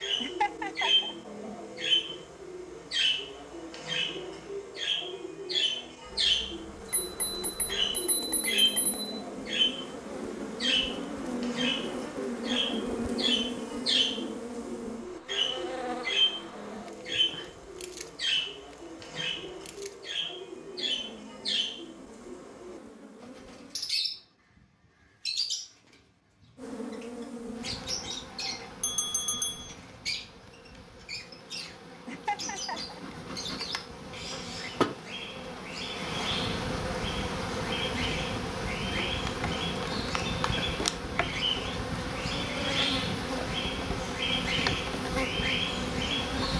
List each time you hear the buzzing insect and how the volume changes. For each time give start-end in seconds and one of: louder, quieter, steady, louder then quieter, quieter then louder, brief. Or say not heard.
6.0-23.8 louder then quieter
26.6-46.5 louder.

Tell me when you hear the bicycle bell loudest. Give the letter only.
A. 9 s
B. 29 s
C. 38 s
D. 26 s
B.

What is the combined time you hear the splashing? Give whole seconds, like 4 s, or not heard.
not heard.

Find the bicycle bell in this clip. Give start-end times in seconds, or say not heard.
6.8-9.2, 28.8-29.8.